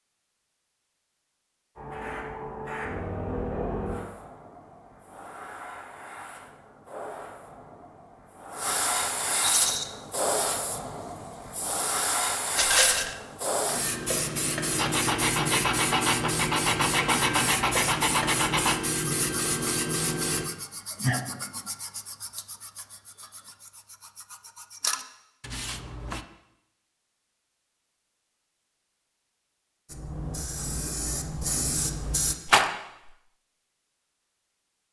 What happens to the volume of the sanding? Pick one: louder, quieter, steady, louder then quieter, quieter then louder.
quieter then louder.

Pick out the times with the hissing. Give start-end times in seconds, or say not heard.
1.8-20.4, 29.9-32.4.